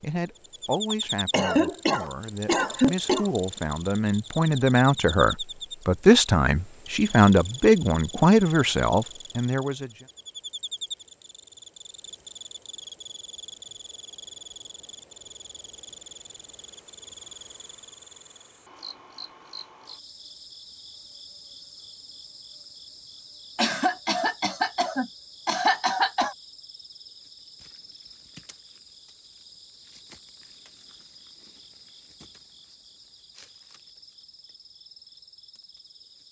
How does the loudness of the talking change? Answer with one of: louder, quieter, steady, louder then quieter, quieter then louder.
louder.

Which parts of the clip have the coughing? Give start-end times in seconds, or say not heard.
0.9-3.3, 23.6-26.4.